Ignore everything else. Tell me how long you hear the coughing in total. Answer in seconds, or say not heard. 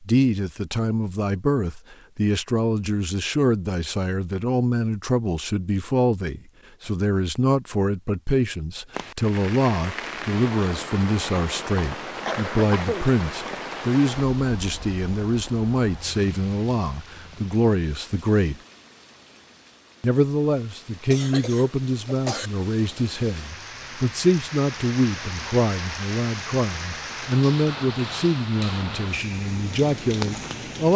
3 s.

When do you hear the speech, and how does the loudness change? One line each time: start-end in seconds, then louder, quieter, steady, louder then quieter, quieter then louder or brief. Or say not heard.
0.0-18.6 steady
20.0-30.9 steady.